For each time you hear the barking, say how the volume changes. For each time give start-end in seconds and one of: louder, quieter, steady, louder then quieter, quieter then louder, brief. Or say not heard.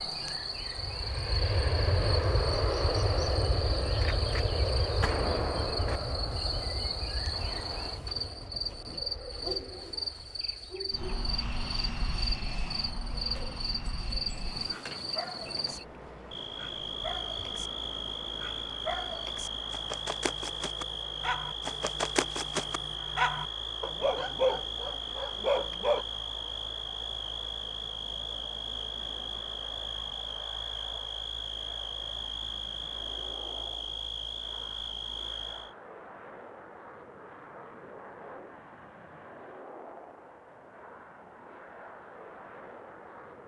14.6-26.1 louder.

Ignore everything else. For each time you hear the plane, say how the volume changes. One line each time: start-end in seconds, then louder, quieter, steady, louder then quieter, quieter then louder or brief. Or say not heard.
0.2-43.4 quieter.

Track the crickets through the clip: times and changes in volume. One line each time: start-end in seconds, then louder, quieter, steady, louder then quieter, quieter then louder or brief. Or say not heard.
0.0-35.8 steady.